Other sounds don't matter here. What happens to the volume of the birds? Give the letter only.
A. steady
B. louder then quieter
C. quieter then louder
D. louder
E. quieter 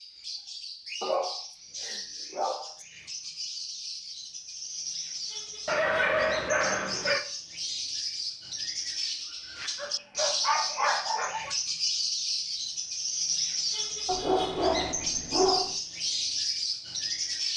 D.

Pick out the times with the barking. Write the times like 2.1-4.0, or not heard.
1.0-2.7, 5.7-7.2, 9.8-11.6, 14.1-15.8.